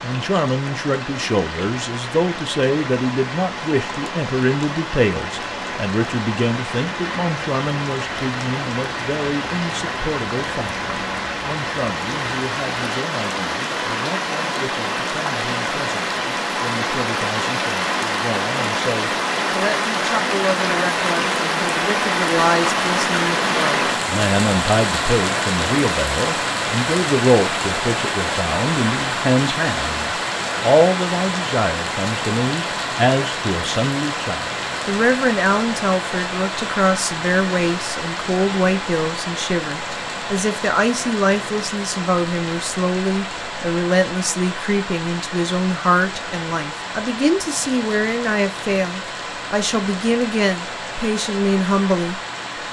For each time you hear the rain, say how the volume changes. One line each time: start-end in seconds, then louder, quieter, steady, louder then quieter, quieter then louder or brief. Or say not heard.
0.0-52.6 louder then quieter.